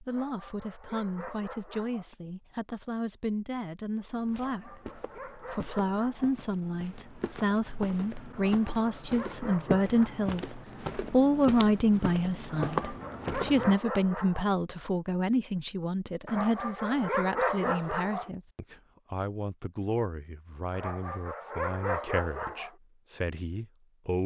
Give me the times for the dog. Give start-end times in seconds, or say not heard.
0.1-2.1, 4.3-6.3, 8.3-10.3, 12.4-14.5, 16.2-18.3, 20.7-22.8.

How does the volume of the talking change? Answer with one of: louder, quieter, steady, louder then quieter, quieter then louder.
louder then quieter.